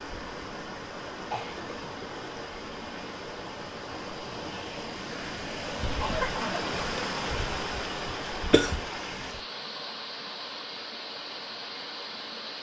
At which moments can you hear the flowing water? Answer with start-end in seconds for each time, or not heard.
0.0-12.5.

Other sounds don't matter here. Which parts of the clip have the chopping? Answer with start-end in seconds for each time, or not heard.
not heard.